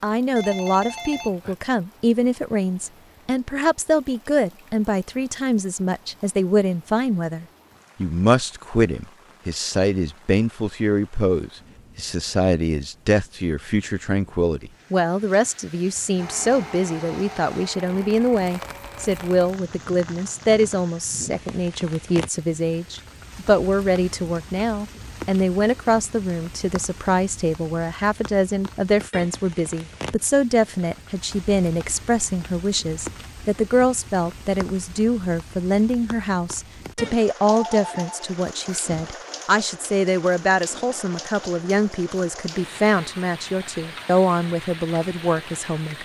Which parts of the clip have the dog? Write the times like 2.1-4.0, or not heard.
not heard.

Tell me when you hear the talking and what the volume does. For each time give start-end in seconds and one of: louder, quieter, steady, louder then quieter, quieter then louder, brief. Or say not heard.
0.0-46.0 steady.